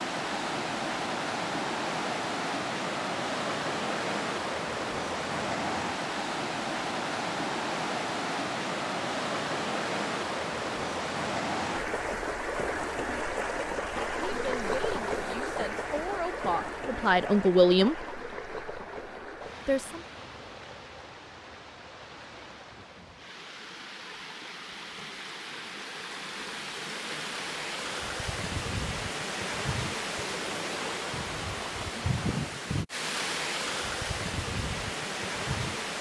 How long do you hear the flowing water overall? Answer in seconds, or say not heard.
36 s.